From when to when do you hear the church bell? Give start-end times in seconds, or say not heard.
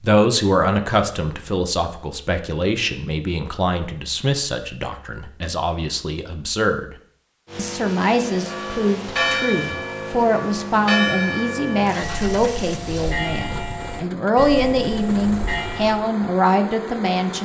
8.3-16.1.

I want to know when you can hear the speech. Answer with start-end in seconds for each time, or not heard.
0.0-7.0, 7.5-17.4.